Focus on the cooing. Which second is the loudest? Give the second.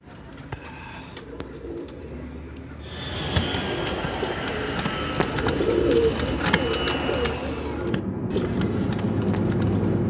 6 s.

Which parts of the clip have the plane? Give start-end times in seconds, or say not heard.
2.8-10.0.